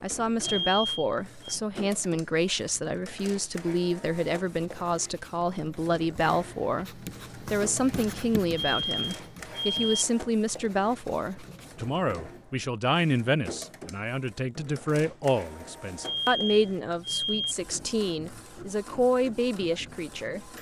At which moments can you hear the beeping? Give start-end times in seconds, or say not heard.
0.4-1.6, 8.6-10.1, 16.0-17.6.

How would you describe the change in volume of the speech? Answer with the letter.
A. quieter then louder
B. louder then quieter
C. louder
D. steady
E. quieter
D.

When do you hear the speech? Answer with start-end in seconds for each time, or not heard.
0.0-20.5.